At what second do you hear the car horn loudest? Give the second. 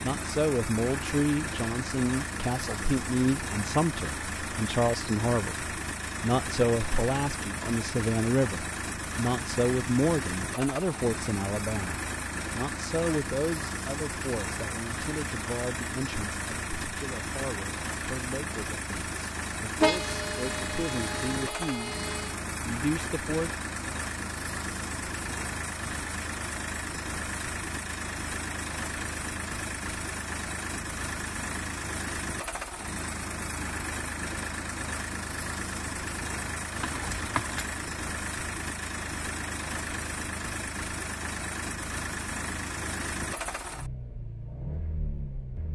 20 s.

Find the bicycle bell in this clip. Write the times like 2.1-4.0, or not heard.
not heard.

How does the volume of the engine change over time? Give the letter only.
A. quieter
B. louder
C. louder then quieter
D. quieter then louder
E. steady
E.